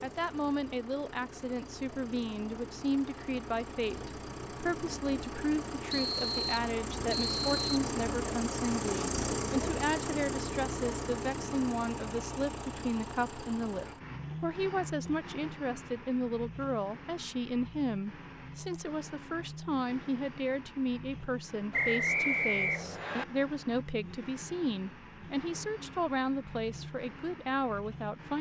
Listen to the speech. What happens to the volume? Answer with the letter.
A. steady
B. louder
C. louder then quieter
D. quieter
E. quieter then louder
A.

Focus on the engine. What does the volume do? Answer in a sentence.
The volume of the engine goes up, then down.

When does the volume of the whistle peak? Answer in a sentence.
The loudest moment of the whistle is at 22 seconds.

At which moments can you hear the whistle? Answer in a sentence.
You can hear the whistle from 5.9 to 7.7 s and from 21.7 to 23.2 s.